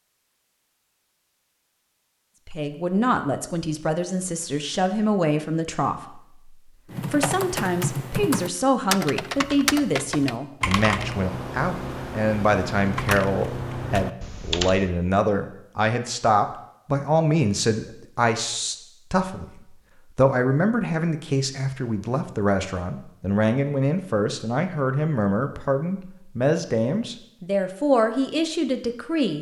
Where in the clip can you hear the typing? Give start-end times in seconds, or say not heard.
6.9-14.9.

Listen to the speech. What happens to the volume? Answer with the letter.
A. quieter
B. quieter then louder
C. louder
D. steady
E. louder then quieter
D.